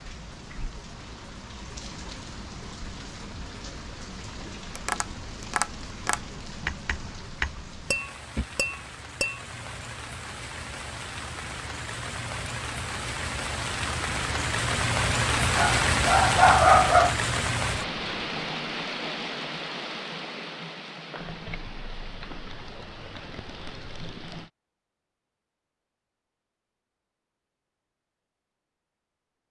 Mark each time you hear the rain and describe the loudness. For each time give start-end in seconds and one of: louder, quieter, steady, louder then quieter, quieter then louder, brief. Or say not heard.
0.0-24.5 louder then quieter.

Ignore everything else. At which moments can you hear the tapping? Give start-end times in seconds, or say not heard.
4.3-9.4.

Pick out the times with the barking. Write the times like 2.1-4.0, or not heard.
15.6-17.1.